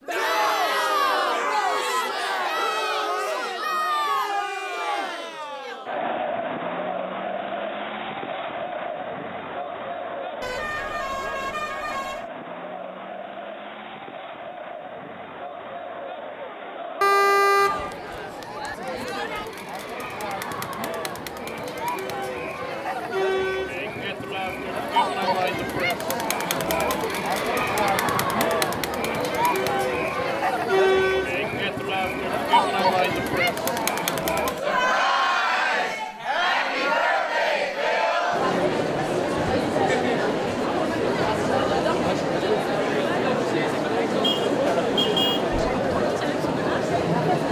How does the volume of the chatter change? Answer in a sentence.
The loudness of the chatter goes down, then up.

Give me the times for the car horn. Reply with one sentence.
You can hear the car horn from 10.4 to 12.3 s, from 17.0 to 18.0 s and from 44.2 to 45.5 s.